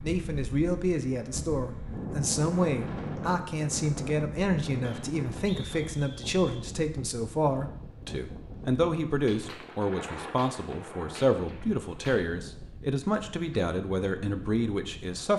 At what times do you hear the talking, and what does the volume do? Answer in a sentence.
The talking can be heard from 0.0 to 15.3 s, at a steady volume.